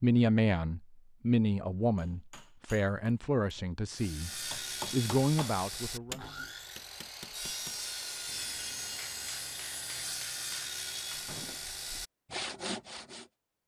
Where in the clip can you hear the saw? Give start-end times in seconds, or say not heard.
3.9-13.3.